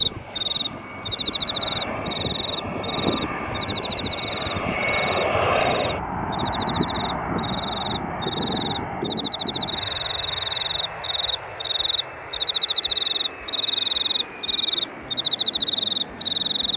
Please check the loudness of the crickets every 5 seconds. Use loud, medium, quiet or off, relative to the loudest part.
medium, medium, loud, loud.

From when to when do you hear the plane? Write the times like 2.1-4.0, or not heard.
0.0-16.7.